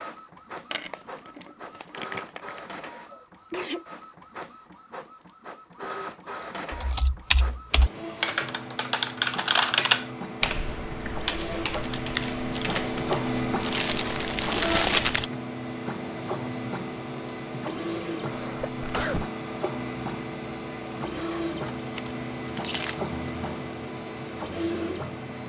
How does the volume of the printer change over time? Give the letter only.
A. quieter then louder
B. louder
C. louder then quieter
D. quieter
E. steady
B.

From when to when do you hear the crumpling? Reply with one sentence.
You can hear the crumpling from 0.7 to 2.7 s, from 13.6 to 15.2 s and from 21.8 to 23.0 s.